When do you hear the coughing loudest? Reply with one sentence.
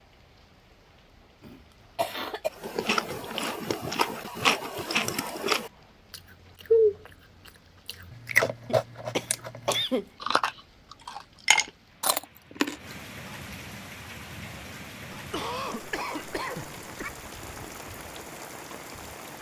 The loudest moment of the coughing is at 10 seconds.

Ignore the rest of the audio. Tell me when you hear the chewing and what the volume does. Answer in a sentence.
The chewing can be heard from 2.6 to 7.0 s, getting louder then quieter; and from 7.8 to 12.8 s, getting quieter then louder.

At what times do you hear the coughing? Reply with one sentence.
The coughing can be heard from 1.4 to 2.5 s, from 8.7 to 10.1 s and from 15.1 to 17.1 s.